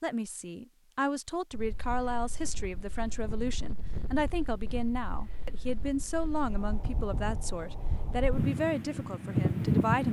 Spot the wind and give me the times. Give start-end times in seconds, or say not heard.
1.5-10.0.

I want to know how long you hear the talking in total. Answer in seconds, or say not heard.
10 s.